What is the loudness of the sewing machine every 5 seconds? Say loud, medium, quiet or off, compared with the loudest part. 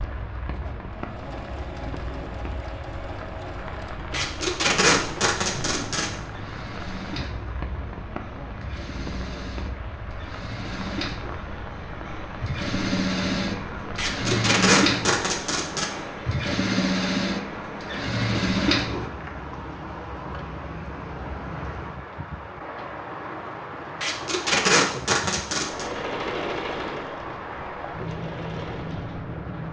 quiet, quiet, loud, loud, off, medium.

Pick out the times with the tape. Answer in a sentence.
The tape can be heard from 4.1 to 6.1 s, from 13.9 to 15.8 s and from 24.0 to 25.9 s.